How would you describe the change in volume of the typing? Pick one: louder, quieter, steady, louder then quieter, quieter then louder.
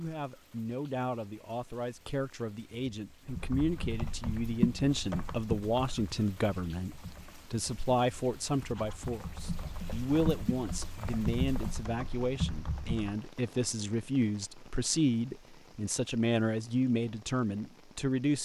quieter then louder.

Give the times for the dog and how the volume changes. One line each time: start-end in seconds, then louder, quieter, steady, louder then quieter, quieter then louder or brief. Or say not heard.
not heard.